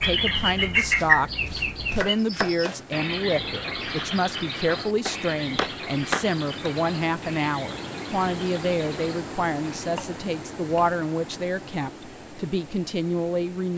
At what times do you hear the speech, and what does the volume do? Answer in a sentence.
The speech can be heard briefly from 0.0 to 1.3 s; and from 1.9 to 13.7 s, at a steady volume.